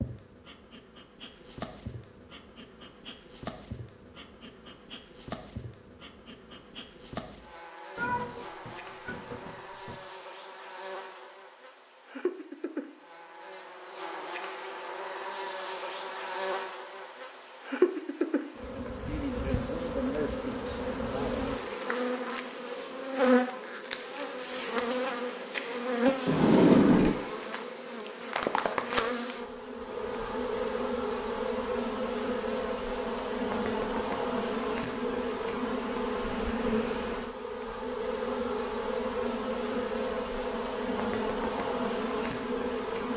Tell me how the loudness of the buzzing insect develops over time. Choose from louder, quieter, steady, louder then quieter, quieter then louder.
louder.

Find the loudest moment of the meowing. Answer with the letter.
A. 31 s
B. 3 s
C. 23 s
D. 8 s
D.